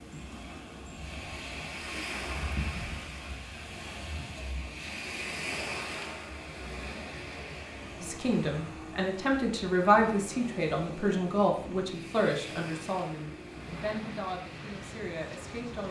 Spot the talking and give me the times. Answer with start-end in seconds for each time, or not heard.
8.0-15.8.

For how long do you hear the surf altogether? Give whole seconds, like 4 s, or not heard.
16 s.